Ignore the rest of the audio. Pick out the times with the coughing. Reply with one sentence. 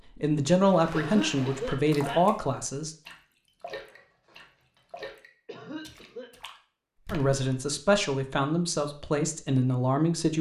The coughing can be heard from 0.9 to 2.2 s and from 5.5 to 6.3 s.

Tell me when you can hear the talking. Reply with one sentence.
The talking can be heard from 0.1 to 3.0 s and from 7.1 to 10.3 s.